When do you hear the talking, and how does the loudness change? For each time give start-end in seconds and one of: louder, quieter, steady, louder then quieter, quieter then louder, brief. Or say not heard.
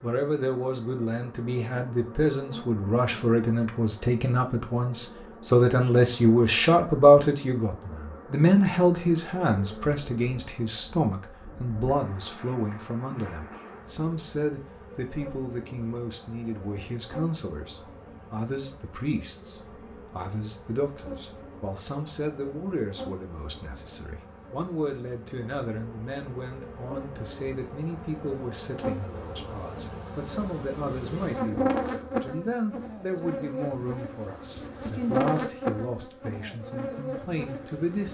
0.0-38.1 quieter.